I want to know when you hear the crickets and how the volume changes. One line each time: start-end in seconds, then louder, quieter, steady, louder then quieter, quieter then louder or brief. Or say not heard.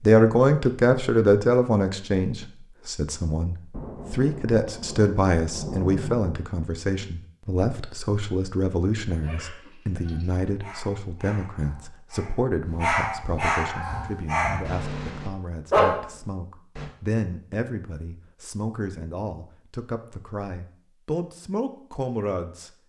not heard.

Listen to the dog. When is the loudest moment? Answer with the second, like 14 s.
16 s.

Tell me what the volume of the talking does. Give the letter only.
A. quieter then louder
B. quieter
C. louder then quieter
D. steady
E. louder
B.